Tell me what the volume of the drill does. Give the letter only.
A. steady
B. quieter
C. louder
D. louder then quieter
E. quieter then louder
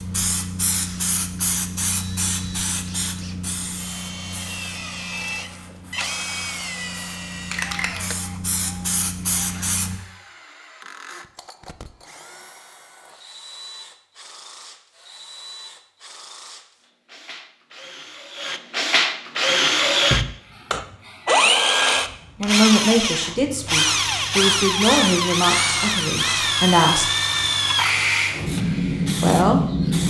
E.